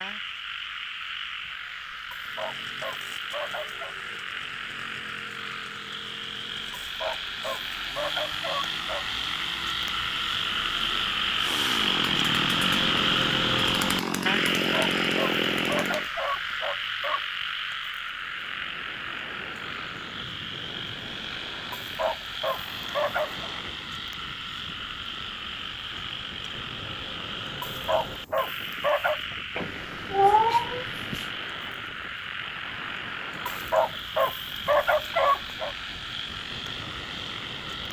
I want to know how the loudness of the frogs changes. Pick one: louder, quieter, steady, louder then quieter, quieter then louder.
louder then quieter.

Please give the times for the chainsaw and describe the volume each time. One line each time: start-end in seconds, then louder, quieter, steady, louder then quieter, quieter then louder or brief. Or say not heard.
2.2-16.1 louder.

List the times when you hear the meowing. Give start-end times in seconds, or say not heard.
29.6-31.2.